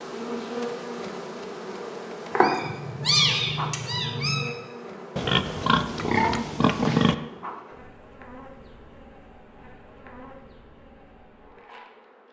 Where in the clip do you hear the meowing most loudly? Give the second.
3 s.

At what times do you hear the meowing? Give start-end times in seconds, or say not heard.
2.3-4.5.